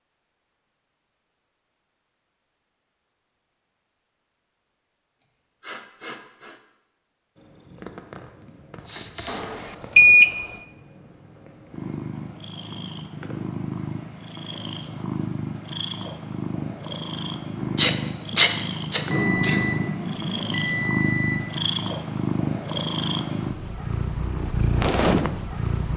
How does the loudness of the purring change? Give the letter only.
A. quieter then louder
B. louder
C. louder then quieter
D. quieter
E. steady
B.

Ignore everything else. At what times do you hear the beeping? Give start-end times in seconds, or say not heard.
9.2-10.4, 19.1-21.5.